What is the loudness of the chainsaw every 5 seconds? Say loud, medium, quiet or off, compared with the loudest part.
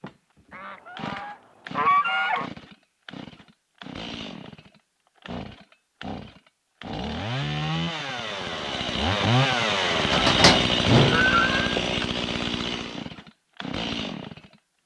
quiet, loud, loud.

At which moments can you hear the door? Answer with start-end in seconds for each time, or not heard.
10.1-11.8.